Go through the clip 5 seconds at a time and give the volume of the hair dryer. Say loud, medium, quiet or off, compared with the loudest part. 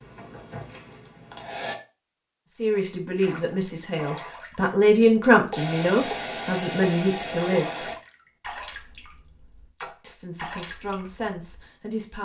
medium, loud, off.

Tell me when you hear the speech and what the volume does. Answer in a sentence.
You can hear the speech from 2.5 to 7.9 s, getting louder then quieter; and briefly from 10.0 to 12.2 s.